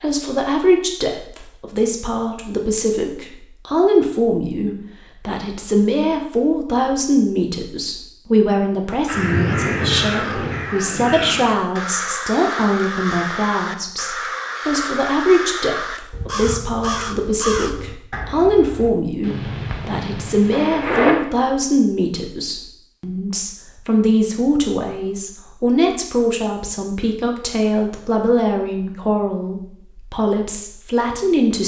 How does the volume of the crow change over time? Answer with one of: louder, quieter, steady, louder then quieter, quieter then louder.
steady.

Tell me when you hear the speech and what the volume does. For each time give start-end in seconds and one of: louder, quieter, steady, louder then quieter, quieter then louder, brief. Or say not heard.
0.0-31.6 steady.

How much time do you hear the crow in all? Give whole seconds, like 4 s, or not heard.
10 s.